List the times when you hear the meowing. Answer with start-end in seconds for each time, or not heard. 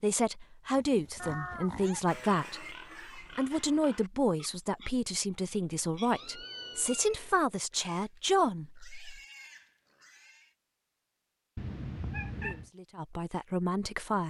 1.1-1.9, 6.1-7.3, 11.6-12.7.